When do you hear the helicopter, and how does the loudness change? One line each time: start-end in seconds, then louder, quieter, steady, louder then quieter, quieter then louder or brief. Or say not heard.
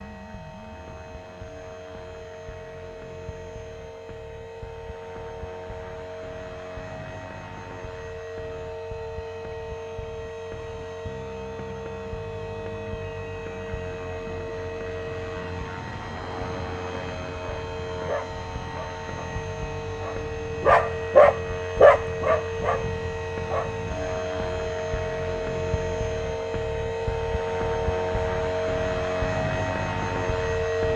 0.0-30.9 louder.